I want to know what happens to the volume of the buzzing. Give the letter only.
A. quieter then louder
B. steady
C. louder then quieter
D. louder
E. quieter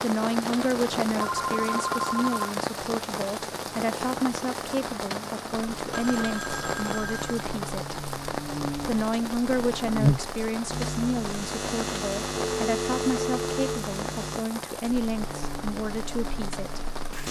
C.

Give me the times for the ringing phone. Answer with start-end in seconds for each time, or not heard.
1.1-2.5, 5.9-7.5, 12.3-13.8.